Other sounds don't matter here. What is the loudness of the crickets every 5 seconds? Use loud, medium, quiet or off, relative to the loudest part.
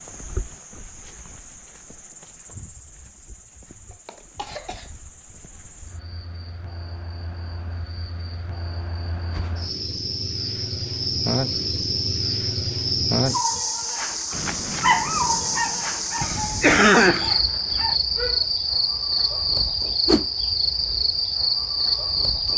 quiet, quiet, loud, loud, loud.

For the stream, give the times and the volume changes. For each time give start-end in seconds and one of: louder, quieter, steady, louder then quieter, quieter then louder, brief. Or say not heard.
not heard.